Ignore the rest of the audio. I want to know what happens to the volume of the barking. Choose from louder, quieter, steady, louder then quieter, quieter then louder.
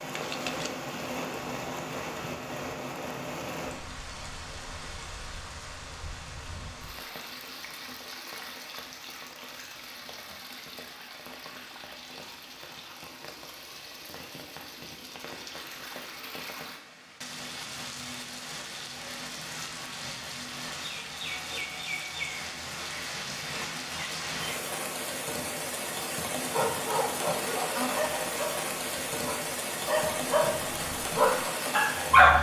quieter then louder.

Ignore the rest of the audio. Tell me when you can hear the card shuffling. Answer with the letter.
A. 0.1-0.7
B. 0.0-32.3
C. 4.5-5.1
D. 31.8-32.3
A.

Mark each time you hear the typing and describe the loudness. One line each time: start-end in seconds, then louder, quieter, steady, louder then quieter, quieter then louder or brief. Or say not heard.
not heard.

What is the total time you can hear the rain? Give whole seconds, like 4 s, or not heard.
32 s.